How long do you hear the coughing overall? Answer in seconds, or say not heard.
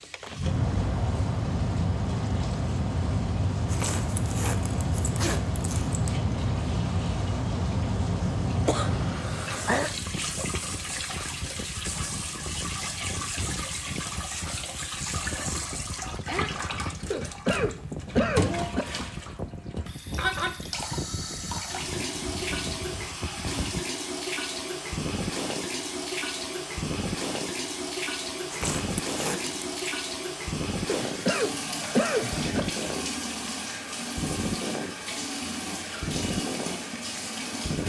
5 s.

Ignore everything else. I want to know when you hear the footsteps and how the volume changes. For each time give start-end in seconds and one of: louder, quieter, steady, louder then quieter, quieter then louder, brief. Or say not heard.
not heard.